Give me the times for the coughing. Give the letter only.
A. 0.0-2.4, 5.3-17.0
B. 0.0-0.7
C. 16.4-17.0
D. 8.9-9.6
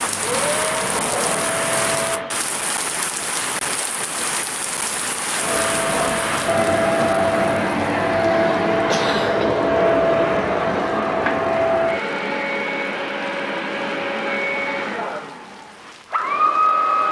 D.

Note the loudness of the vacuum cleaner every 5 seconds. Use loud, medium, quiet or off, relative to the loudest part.
medium, loud, loud, loud.